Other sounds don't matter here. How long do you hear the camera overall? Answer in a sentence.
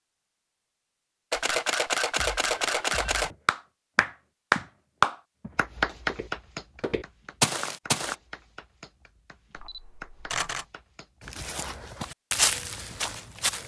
The camera can be heard for 3 seconds in total.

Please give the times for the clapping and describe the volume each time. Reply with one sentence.
The clapping can be heard from 3.0 to 11.2 s, getting quieter.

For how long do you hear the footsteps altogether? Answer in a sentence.
You can hear the footsteps for 7 seconds altogether.